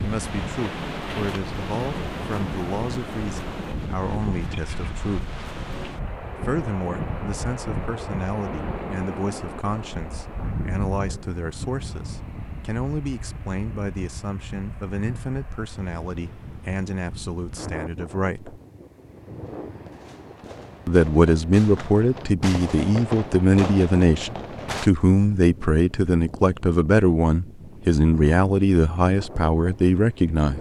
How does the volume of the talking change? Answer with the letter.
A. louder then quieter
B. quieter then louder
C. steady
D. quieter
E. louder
E.